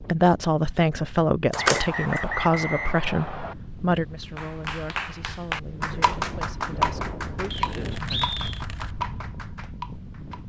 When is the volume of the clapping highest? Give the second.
7 s.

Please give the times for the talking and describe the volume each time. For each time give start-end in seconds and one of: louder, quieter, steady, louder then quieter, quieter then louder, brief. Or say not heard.
0.0-8.3 quieter.